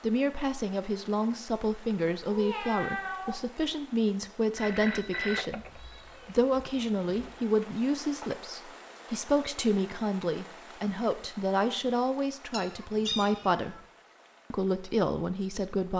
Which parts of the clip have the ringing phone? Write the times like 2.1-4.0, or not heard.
4.5-5.8.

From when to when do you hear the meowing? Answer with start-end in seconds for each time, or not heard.
2.2-3.4, 5.6-7.3, 12.5-13.8.